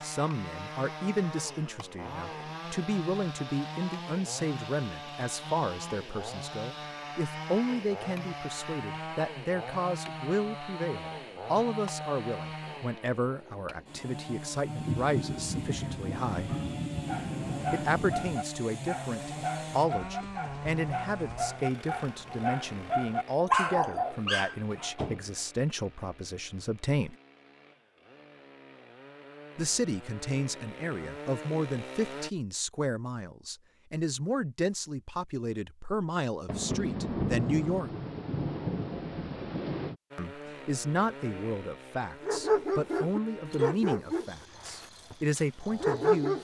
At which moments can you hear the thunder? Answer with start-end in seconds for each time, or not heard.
14.8-18.4, 36.5-40.0.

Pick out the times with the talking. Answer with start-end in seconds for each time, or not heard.
0.0-16.6, 17.7-27.1, 29.6-37.9, 40.1-46.4.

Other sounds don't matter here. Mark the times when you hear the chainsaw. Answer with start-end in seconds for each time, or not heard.
0.0-32.3, 40.1-46.4.